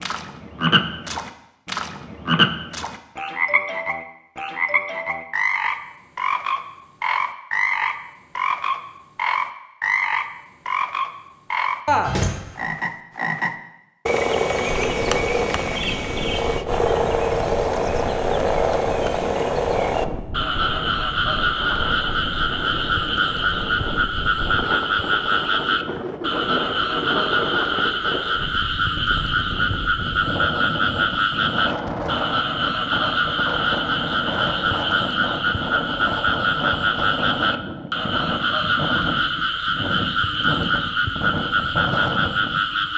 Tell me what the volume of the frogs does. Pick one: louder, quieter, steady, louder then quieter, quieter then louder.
steady.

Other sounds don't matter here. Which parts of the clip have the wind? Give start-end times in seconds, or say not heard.
14.7-42.9.